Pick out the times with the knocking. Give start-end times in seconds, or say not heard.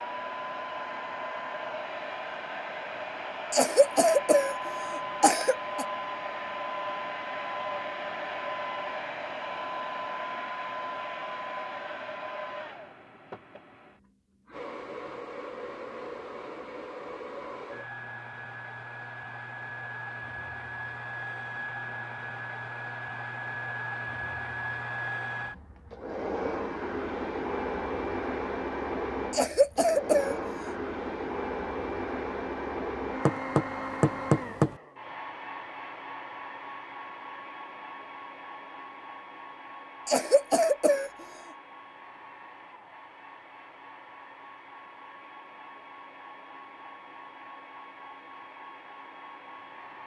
33.2-34.8.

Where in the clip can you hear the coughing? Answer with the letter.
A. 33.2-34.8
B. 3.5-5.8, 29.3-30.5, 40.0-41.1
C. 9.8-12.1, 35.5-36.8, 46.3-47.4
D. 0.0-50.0
B.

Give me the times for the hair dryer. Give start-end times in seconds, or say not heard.
0.0-50.0.